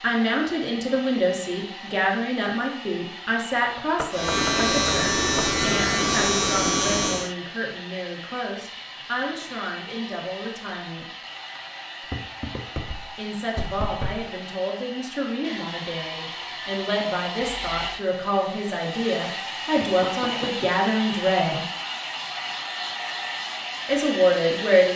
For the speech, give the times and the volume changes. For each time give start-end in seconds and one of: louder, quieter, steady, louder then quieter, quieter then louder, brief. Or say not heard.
0.0-11.1 quieter
13.2-21.6 louder
23.9-24.9 brief.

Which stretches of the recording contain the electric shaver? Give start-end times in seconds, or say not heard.
4.1-7.3.